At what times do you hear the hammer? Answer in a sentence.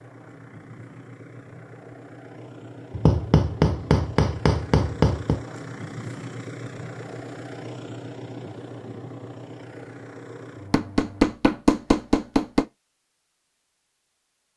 The hammer can be heard from 2.9 to 5.4 s and from 10.7 to 12.7 s.